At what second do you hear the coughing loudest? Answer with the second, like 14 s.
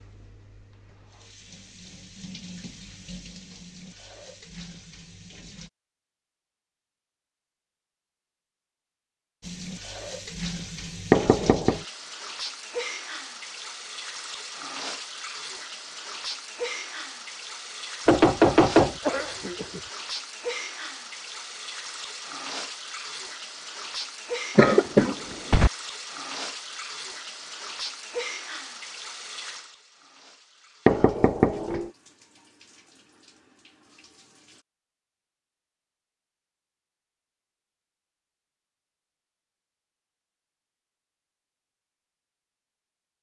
25 s.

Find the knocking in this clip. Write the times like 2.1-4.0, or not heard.
11.1-11.8, 18.1-18.9, 30.9-31.9.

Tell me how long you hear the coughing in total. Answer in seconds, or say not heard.
2 s.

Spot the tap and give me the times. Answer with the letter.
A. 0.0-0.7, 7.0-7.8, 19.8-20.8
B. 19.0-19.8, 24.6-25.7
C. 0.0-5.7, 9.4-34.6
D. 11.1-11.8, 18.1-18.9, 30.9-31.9
C.